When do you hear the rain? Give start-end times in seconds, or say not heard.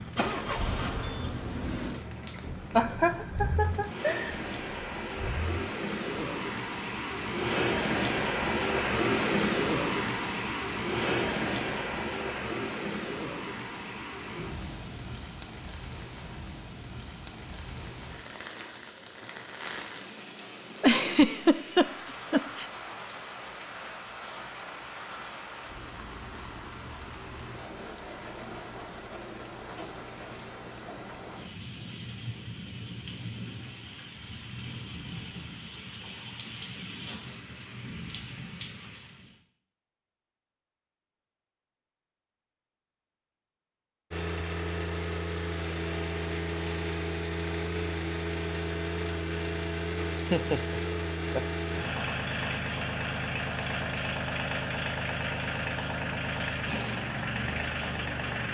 0.0-39.4.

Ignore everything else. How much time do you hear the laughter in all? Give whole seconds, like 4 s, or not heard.
5 s.